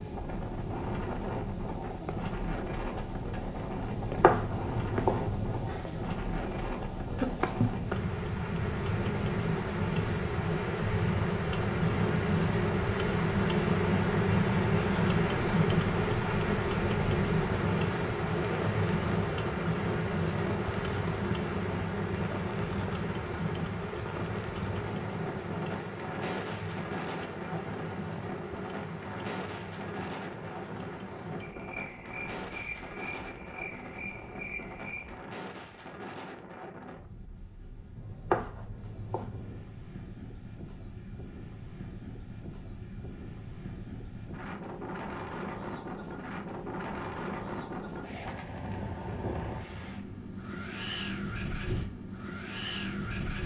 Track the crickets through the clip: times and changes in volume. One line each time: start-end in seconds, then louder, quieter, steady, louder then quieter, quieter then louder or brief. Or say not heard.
0.0-53.4 louder then quieter.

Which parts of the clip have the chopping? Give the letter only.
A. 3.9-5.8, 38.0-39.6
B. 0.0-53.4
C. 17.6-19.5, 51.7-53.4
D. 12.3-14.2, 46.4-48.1
A.